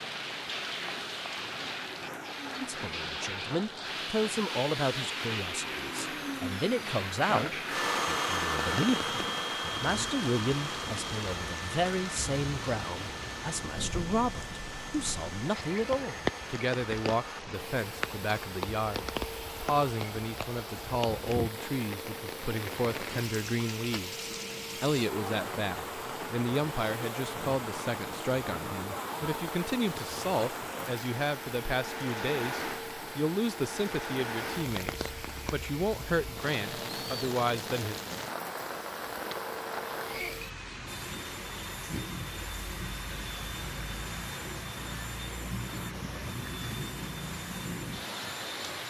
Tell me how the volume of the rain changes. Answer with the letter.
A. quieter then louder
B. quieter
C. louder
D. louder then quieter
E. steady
E.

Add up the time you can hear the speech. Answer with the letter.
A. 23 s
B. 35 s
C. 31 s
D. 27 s
B.